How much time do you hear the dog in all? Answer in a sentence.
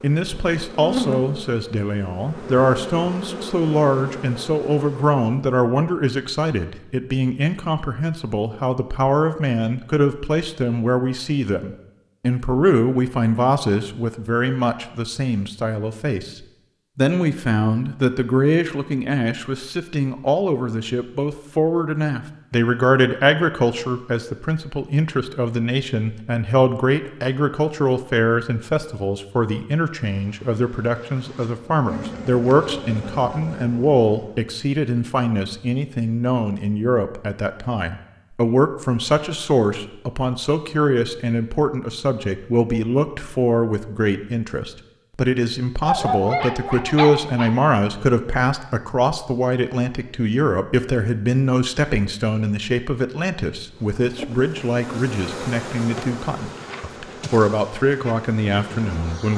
The dog can be heard for 2 seconds in total.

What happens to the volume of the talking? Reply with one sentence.
The volume of the talking stays about the same.